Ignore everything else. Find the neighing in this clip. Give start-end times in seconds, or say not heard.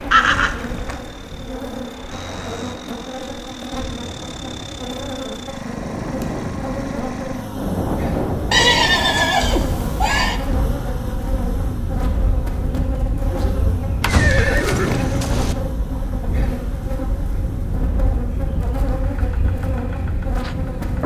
0.1-1.0, 8.5-10.4, 14.0-15.6.